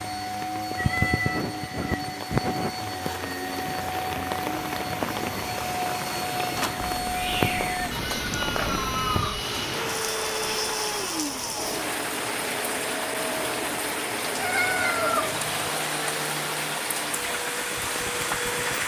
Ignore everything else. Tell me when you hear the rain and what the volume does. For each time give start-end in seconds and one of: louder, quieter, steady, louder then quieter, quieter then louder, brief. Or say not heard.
0.0-18.8 steady.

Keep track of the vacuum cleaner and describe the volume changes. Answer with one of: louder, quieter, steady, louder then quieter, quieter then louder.
steady.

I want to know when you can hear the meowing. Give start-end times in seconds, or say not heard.
0.7-2.0, 7.0-9.4, 14.3-15.7.